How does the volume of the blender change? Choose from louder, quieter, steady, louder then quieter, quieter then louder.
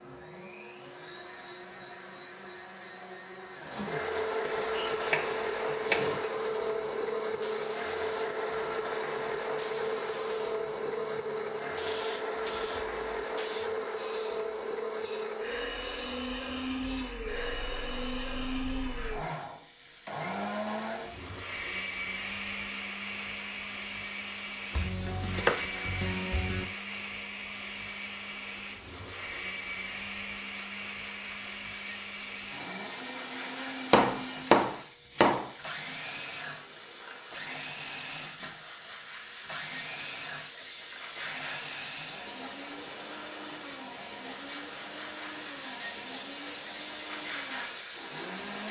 quieter.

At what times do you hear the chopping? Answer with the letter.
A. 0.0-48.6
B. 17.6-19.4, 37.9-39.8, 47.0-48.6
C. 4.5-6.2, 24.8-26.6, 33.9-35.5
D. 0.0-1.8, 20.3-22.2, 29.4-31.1
C.